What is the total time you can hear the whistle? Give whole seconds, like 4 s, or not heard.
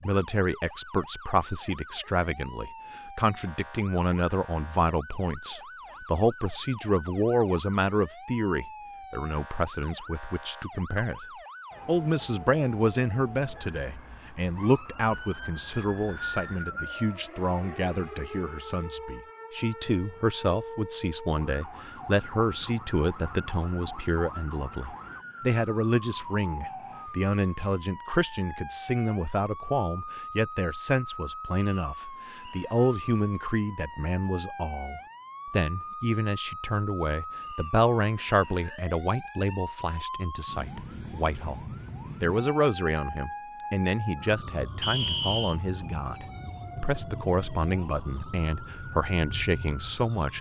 2 s.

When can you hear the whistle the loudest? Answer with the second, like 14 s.
45 s.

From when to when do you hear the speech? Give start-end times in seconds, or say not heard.
0.0-11.2, 11.8-50.3.